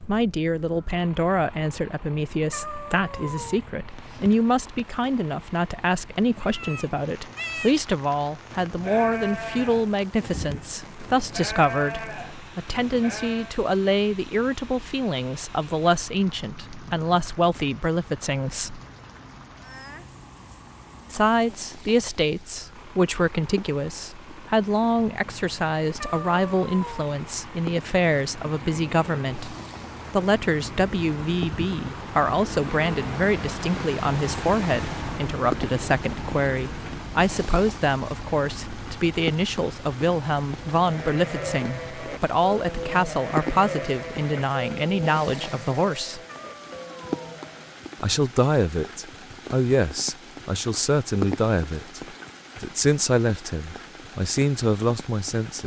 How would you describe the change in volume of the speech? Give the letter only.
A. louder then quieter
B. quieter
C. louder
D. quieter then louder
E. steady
E.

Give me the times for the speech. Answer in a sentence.
The speech can be heard from 0.0 to 18.8 s, from 21.1 to 46.2 s and from 48.0 to 55.6 s.